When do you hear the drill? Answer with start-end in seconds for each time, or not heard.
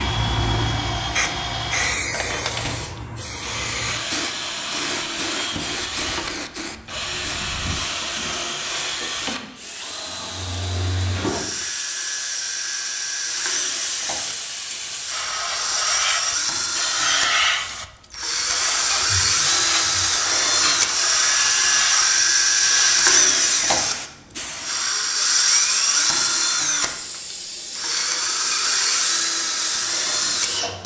0.0-30.8.